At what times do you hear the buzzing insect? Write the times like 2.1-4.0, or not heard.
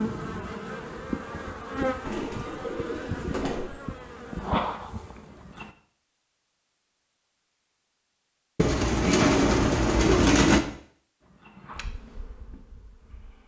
0.0-5.7, 11.2-13.4.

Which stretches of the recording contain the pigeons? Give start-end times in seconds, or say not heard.
2.0-3.7, 8.6-10.6.